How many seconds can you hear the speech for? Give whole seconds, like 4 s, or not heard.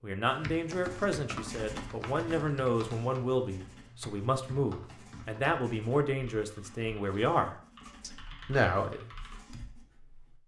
9 s.